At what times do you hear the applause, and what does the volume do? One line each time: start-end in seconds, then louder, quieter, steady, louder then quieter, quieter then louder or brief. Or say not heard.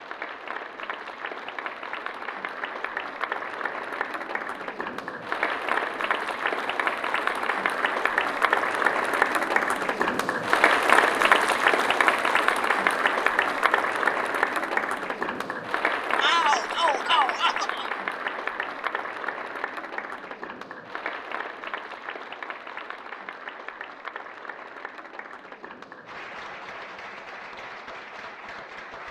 0.0-29.0 louder then quieter.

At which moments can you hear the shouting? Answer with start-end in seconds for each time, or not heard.
16.2-17.9.